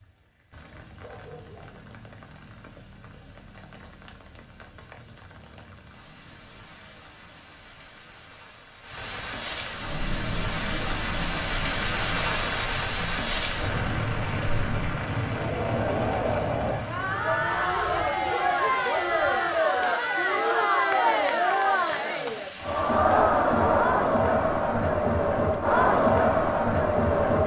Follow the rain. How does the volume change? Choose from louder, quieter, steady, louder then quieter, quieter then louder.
louder then quieter.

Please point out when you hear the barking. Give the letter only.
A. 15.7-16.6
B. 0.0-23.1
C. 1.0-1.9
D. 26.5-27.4
C.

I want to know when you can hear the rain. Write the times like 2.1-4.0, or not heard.
0.0-23.1.